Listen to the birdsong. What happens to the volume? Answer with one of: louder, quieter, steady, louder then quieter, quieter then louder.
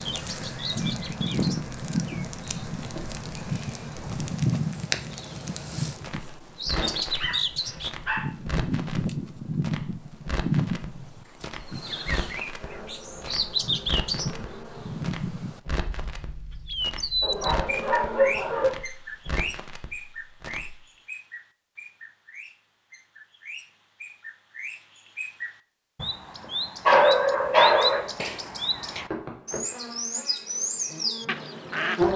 quieter then louder.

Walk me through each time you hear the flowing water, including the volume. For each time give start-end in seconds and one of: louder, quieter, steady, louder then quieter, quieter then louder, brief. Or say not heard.
not heard.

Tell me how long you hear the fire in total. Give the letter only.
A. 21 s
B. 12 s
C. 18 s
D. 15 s
A.